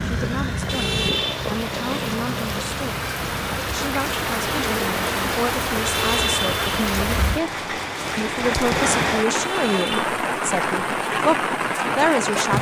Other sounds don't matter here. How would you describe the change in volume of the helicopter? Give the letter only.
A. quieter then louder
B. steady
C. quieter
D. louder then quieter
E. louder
C.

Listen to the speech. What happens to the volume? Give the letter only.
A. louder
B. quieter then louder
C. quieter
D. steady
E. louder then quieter
A.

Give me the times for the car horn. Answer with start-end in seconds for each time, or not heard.
0.7-1.4, 5.8-6.6, 9.4-10.1.